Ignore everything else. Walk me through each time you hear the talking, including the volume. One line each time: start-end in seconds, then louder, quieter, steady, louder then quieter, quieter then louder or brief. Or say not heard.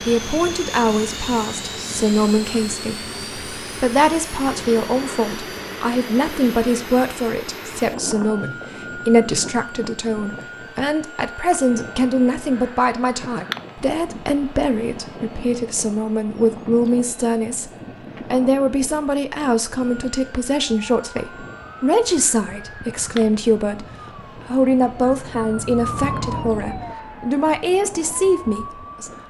0.1-17.7 steady
18.3-29.1 steady.